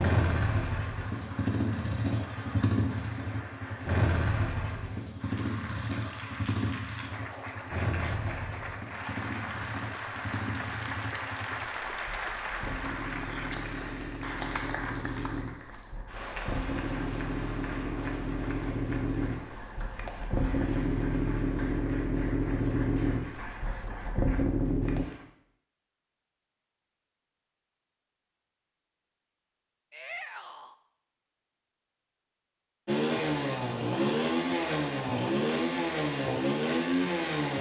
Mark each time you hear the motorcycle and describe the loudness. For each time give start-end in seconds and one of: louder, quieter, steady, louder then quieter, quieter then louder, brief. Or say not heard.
0.0-25.1 quieter then louder
32.9-37.5 steady.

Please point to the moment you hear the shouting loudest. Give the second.
30 s.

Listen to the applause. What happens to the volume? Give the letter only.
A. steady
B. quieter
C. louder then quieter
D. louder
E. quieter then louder
C.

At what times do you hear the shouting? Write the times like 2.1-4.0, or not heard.
13.2-13.6, 29.9-30.8.